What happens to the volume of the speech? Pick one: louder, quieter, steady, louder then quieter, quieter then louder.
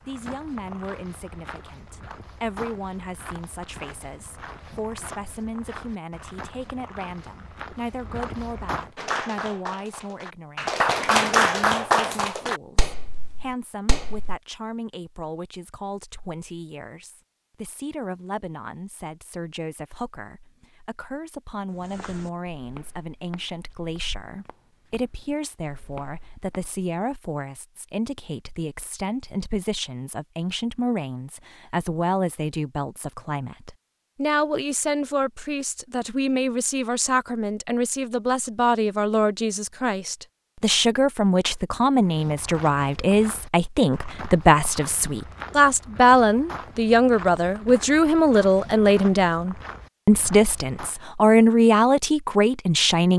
louder.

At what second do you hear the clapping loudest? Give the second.
11 s.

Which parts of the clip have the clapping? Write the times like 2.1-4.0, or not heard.
8.9-14.3.